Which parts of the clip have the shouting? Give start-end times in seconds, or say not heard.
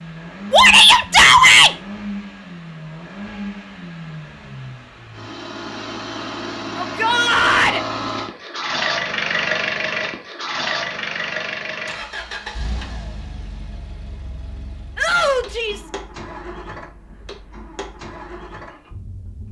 0.5-1.8, 6.8-7.8, 14.9-15.9.